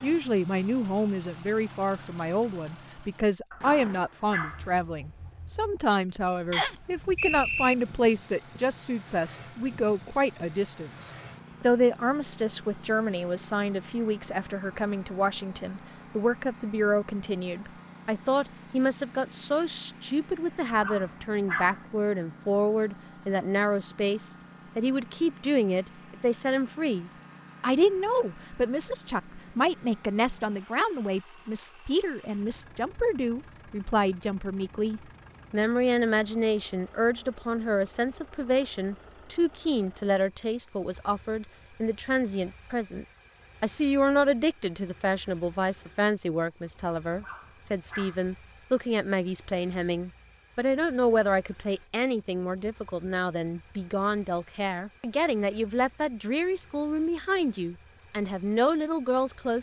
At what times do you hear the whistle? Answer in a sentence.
The whistle can be heard from 6.5 to 7.8 s.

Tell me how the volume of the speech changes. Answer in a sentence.
The volume of the speech stays about the same.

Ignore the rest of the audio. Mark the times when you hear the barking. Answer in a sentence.
The barking can be heard from 3.5 to 4.7 s, from 20.6 to 21.9 s and from 47.1 to 48.2 s.